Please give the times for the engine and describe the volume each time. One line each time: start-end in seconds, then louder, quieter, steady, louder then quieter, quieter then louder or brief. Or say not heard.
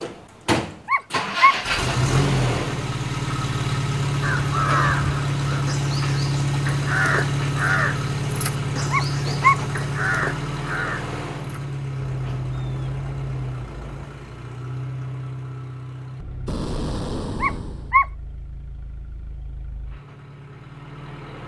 0.0-21.4 quieter.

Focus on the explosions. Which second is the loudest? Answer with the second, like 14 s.
17 s.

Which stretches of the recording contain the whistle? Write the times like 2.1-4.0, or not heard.
not heard.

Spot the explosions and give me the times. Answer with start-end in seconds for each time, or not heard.
16.4-17.9.